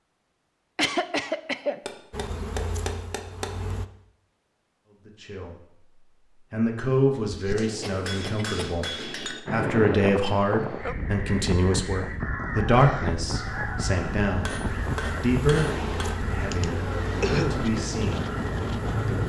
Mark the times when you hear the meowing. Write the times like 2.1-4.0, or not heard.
not heard.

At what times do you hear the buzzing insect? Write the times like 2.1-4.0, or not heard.
2.1-3.9, 13.3-19.2.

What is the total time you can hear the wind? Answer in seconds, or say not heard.
10 s.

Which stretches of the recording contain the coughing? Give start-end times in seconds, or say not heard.
0.8-1.8, 7.2-8.8, 16.5-17.6.